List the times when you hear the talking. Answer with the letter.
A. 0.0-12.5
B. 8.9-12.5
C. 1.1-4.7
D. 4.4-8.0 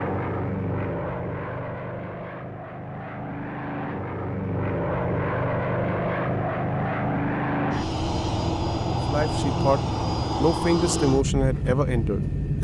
B.